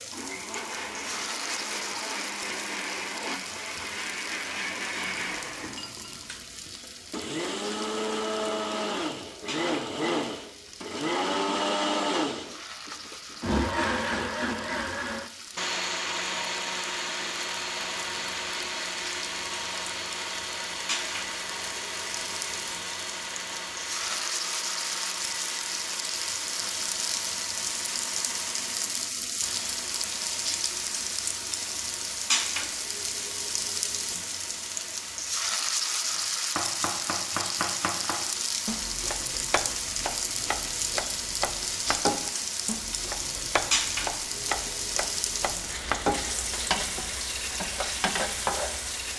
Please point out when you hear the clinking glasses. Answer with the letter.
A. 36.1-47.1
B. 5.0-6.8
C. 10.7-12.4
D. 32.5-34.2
B.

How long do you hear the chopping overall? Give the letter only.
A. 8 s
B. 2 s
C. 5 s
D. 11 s
D.